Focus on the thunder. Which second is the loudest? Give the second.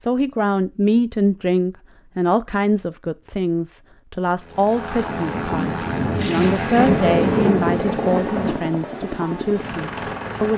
7 s.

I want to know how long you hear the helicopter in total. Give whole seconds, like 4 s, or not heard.
6 s.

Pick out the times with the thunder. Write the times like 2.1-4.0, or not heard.
5.0-8.6.